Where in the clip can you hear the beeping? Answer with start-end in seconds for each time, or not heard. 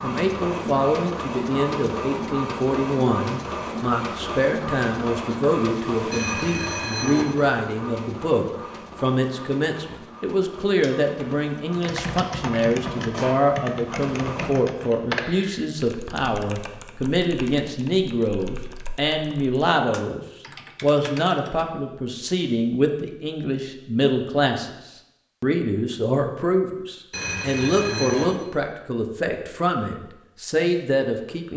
6.1-7.2, 27.1-28.2.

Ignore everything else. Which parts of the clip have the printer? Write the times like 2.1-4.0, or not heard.
0.0-14.6.